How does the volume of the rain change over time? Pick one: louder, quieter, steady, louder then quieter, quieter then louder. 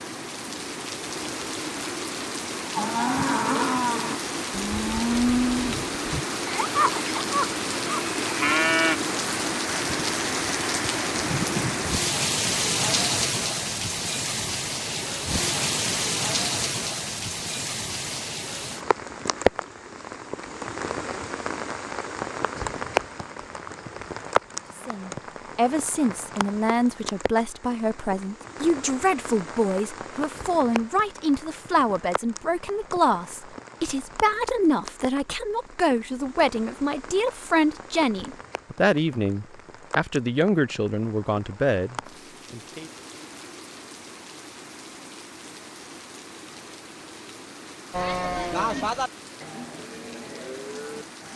quieter.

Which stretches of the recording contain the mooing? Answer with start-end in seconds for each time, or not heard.
2.8-8.9, 47.9-51.3.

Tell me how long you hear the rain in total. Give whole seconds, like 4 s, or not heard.
51 s.